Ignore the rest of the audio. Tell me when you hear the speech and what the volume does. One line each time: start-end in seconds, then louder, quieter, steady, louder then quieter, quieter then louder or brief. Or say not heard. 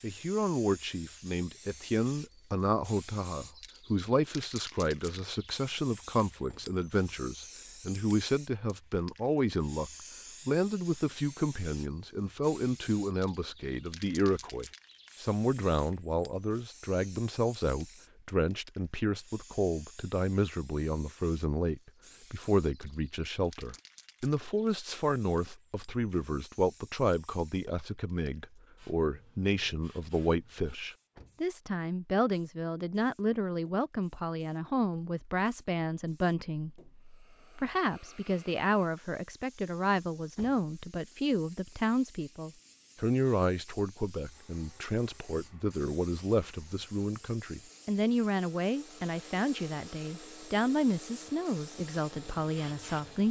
0.0-53.2 steady.